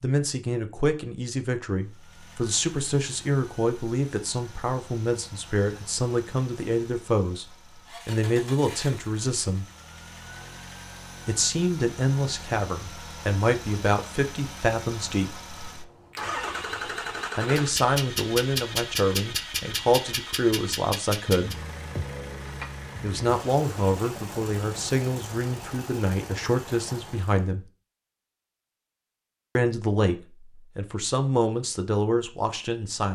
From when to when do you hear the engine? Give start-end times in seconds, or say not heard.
1.8-27.5.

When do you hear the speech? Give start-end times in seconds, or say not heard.
0.0-9.7, 11.2-15.3, 17.4-21.6, 23.0-27.6, 29.6-33.1.